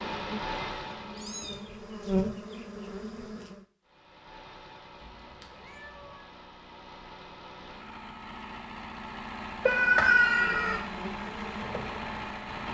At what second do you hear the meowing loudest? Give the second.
10 s.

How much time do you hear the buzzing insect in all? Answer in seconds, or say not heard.
6 s.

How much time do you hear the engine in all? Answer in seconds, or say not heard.
11 s.